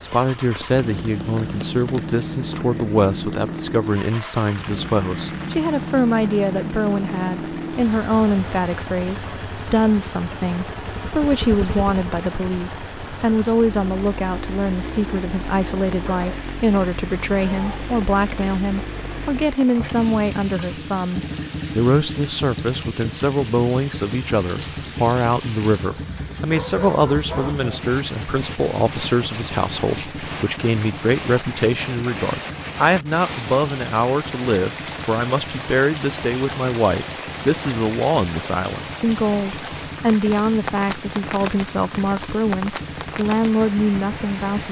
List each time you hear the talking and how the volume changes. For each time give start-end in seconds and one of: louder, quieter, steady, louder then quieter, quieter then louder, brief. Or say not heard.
0.0-44.6 steady.